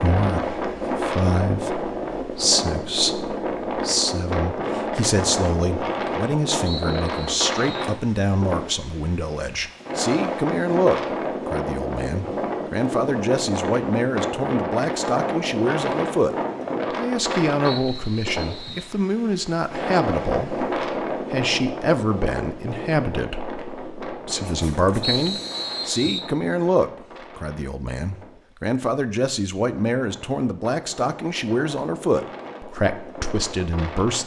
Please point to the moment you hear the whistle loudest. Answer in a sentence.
The volume of the whistle peaks at 25 seconds.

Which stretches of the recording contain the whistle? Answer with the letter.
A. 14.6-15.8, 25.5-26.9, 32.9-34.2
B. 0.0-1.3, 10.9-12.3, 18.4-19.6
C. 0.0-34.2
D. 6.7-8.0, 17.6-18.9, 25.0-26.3
D.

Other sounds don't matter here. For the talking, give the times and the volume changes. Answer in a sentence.
You can hear the talking from 0.0 to 34.2 s, at a steady volume.